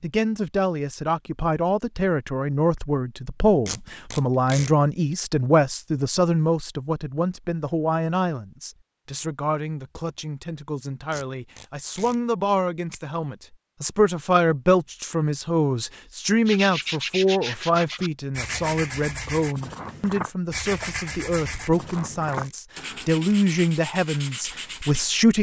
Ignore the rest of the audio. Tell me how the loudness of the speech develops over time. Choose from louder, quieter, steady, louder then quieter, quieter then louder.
steady.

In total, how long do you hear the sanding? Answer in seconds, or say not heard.
9 s.